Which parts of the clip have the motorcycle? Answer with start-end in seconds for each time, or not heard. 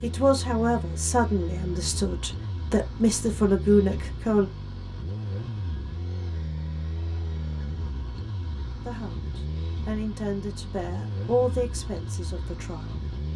0.0-13.3.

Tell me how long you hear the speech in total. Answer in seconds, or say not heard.
9 s.